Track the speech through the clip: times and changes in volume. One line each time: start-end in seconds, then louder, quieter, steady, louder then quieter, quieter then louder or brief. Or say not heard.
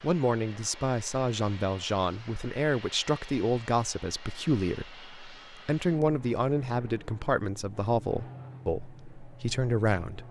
0.0-10.2 steady.